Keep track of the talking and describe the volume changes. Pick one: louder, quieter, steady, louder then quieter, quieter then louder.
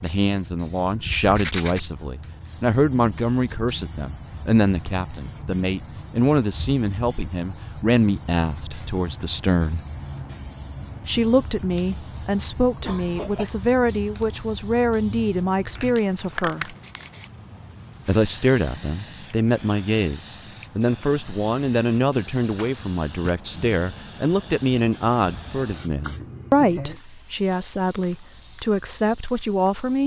steady.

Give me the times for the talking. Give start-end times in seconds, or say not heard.
0.0-9.8, 11.1-16.8, 18.1-30.0.